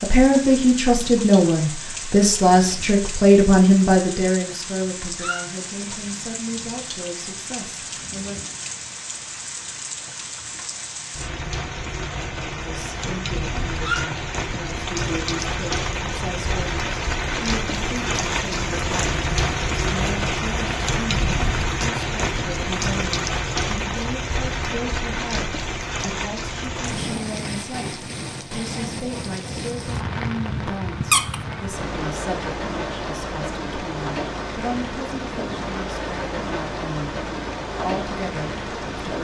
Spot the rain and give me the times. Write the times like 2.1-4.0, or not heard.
0.0-39.1.